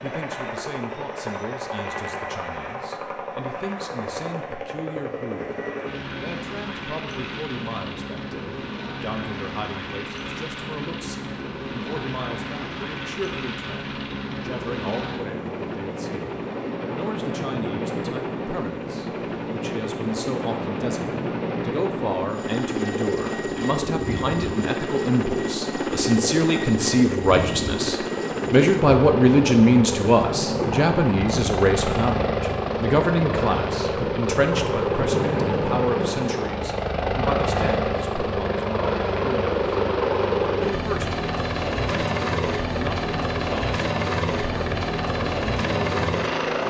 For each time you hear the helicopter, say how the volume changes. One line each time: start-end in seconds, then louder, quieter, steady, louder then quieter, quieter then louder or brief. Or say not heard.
0.0-46.6 louder.